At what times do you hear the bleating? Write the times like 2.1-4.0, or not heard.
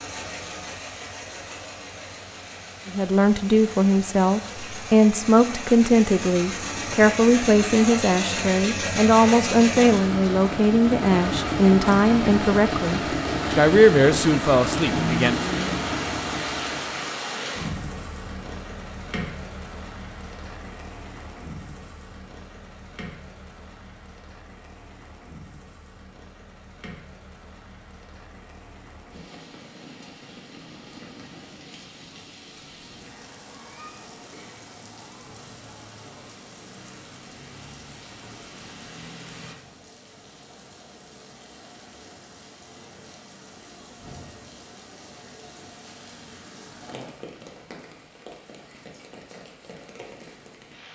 not heard.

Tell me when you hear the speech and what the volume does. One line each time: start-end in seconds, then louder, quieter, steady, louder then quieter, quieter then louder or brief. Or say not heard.
2.9-15.4 steady.